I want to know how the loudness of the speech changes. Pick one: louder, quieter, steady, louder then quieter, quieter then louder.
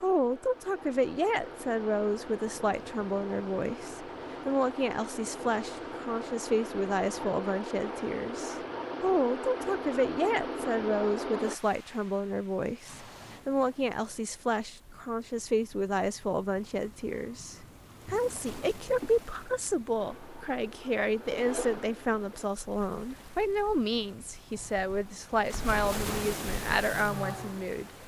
steady.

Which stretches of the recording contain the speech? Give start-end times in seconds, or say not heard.
0.0-27.9.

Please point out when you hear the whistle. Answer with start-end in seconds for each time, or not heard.
not heard.